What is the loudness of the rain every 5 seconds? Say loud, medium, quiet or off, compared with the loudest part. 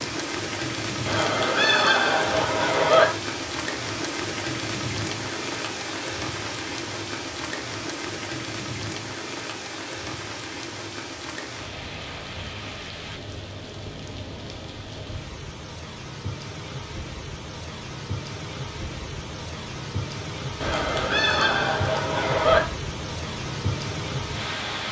loud, loud, medium, medium, loud.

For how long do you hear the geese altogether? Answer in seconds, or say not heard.
4 s.